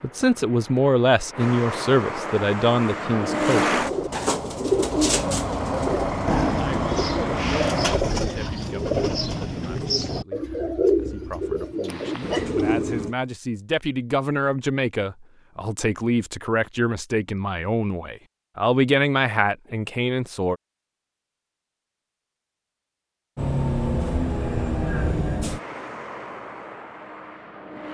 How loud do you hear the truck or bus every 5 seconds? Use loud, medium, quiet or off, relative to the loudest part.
loud, loud, off, off, loud, medium.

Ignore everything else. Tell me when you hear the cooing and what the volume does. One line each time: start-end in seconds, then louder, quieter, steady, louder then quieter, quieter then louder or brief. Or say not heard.
3.8-13.2 steady.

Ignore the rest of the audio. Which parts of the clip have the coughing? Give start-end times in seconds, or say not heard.
11.8-12.7.